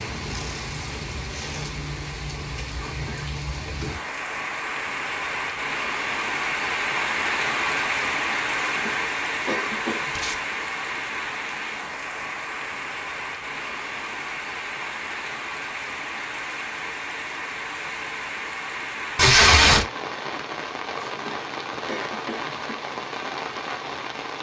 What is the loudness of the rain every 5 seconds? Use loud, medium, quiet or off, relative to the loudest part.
medium, loud, medium, medium, medium.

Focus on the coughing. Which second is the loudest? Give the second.
10 s.